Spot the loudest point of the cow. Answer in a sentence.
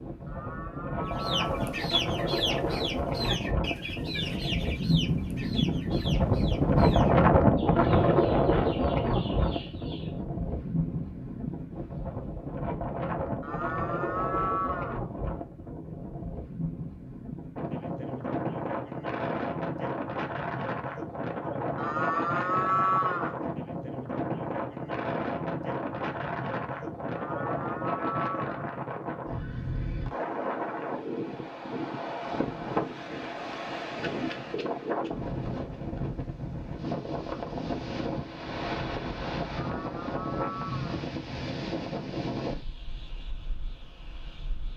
The volume of the cow peaks at 23 seconds.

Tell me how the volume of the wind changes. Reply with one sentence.
The volume of the wind goes down.